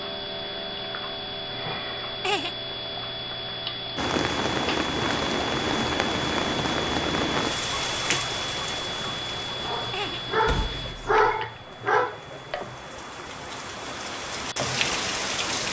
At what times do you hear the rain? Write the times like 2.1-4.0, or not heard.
4.0-15.6.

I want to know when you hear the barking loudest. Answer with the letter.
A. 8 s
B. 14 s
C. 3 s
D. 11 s
D.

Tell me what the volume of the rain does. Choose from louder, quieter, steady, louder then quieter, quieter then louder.
quieter then louder.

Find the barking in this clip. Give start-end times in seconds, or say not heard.
9.6-12.2.